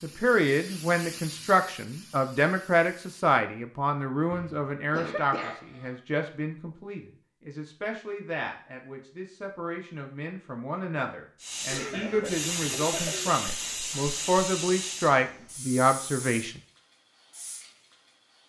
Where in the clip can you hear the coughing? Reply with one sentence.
The coughing can be heard from 4.3 to 6.0 s and from 11.7 to 13.3 s.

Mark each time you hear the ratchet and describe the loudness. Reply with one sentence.
The ratchet can't be heard in this clip.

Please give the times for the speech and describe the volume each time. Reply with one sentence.
The speech can be heard from 0.0 to 16.6 s, getting quieter then louder.